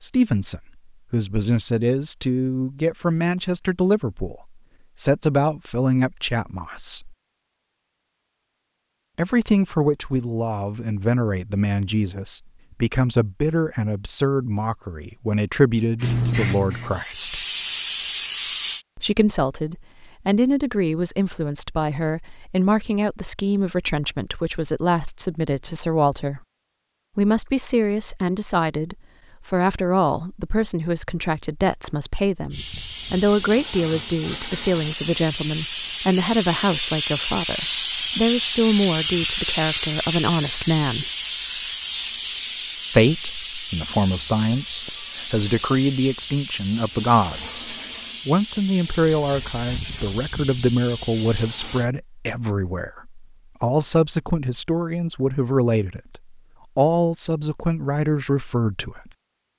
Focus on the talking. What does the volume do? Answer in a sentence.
The loudness of the talking stays about the same.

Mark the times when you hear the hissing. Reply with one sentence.
You can hear the hissing from 16.0 to 18.9 s and from 32.5 to 51.9 s.